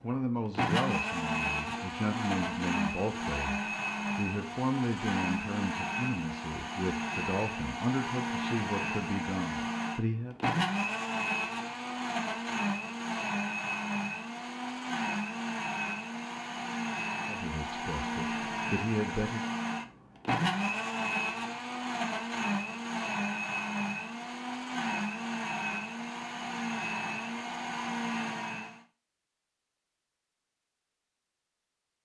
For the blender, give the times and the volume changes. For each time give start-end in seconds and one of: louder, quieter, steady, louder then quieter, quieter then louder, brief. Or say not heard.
0.3-28.9 steady.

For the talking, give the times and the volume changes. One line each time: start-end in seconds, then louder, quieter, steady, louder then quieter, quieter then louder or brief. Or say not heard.
0.0-10.3 steady
17.2-19.4 brief.